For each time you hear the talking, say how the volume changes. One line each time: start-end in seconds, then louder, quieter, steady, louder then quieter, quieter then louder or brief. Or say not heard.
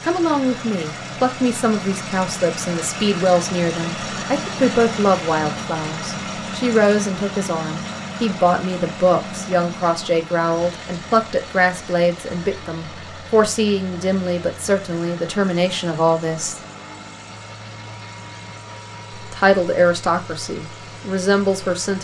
0.1-16.6 steady
19.1-21.9 brief.